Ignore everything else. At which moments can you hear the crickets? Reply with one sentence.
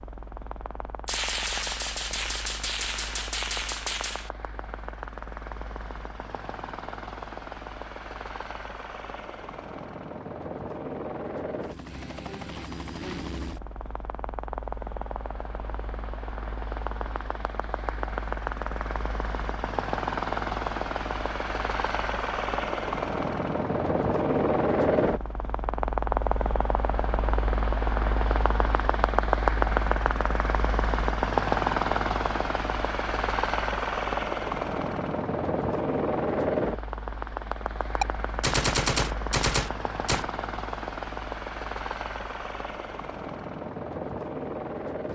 You can't hear the crickets here.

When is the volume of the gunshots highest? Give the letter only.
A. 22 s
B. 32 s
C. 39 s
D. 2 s
C.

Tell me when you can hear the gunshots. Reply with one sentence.
You can hear the gunshots from 1.1 to 4.3 s and from 38.0 to 40.3 s.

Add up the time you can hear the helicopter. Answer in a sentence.
The helicopter can be heard for 45 seconds in total.